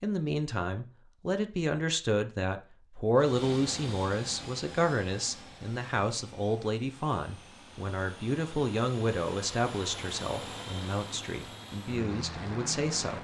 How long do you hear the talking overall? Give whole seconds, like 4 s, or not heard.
13 s.